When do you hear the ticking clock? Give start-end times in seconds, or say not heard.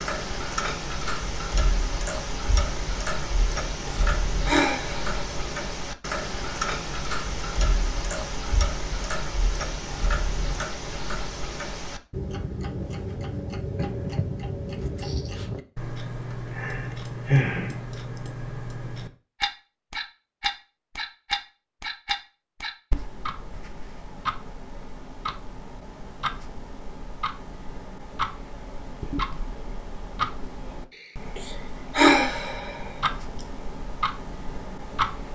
0.0-35.2.